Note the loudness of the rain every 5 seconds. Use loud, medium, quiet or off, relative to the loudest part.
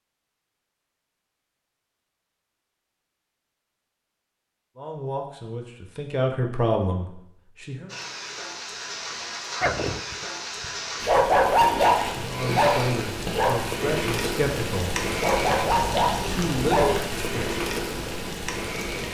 off, medium, loud, loud.